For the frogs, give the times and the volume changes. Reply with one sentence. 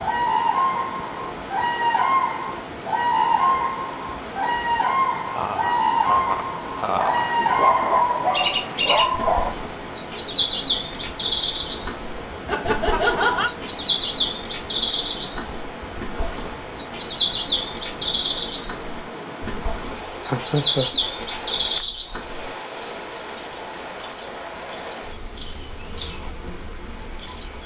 You can't hear the frogs here.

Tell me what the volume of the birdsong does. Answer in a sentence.
The loudness of the birdsong stays about the same.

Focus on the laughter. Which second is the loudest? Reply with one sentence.
The loudest moment of the laughter is at 13 seconds.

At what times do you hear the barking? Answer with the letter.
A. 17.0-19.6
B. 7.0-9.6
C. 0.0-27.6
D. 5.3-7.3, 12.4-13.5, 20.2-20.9
B.